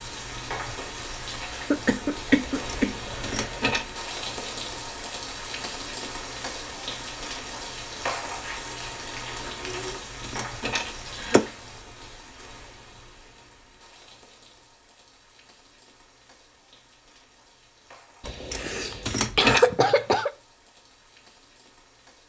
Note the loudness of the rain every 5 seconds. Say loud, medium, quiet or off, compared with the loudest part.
loud, loud, medium, quiet, quiet.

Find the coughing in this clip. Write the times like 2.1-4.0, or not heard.
1.7-3.6, 11.0-11.4, 18.5-20.3.